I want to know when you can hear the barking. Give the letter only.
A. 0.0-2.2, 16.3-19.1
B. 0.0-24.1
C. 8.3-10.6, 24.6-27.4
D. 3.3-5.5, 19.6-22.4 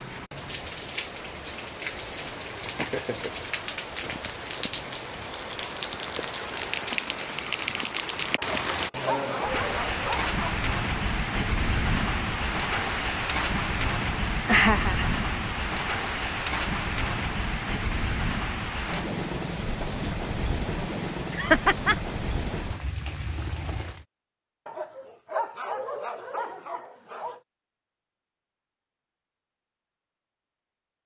C.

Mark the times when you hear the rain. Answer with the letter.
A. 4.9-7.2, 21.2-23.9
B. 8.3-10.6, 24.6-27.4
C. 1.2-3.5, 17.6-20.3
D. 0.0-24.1
D.